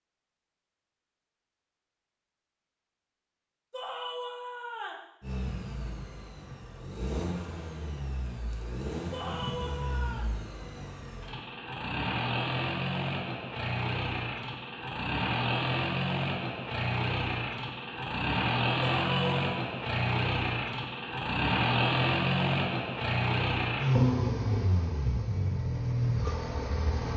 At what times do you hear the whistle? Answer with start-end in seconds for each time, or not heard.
not heard.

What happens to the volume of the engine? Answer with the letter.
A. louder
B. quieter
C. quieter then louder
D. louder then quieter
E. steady
A.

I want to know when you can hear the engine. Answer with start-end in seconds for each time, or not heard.
5.2-27.1.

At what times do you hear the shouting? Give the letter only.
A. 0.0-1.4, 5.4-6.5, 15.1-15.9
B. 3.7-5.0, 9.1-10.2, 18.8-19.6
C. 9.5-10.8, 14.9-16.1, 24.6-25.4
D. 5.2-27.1
B.